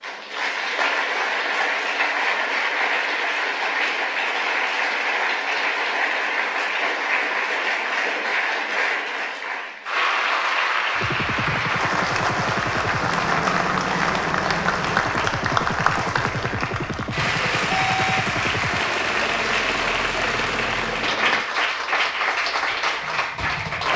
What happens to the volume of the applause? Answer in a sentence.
The loudness of the applause stays about the same.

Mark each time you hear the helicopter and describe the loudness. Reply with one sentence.
You can hear the helicopter from 10.9 to 21.4 s, at a steady volume.